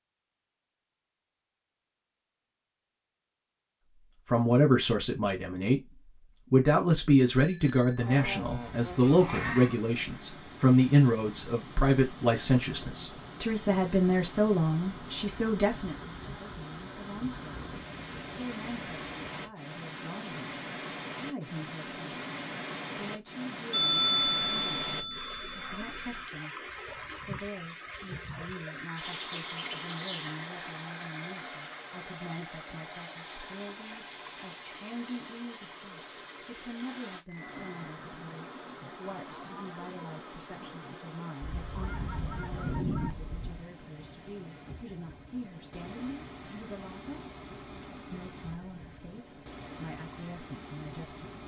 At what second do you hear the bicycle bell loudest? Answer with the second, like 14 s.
24 s.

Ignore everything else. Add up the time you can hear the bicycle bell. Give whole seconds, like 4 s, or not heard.
4 s.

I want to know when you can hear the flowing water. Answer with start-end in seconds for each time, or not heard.
8.6-51.4.